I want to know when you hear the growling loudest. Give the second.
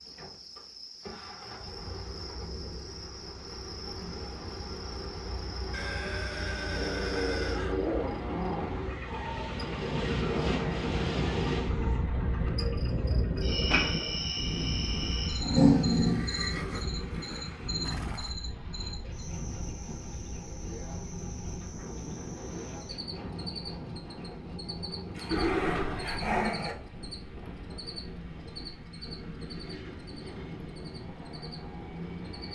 16 s.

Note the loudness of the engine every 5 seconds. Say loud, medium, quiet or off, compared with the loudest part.
medium, loud, loud, medium, medium, medium, medium.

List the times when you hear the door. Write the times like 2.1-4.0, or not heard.
not heard.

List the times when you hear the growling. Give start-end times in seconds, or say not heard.
6.8-8.8, 15.4-16.2, 25.1-26.8.